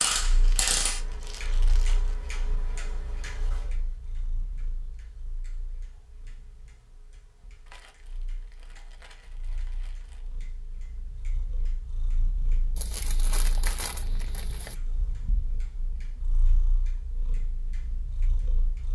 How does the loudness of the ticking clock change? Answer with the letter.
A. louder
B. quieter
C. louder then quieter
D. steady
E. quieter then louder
B.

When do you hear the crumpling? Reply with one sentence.
The crumpling can be heard from 0.3 to 2.1 s, from 7.7 to 10.3 s and from 12.8 to 14.8 s.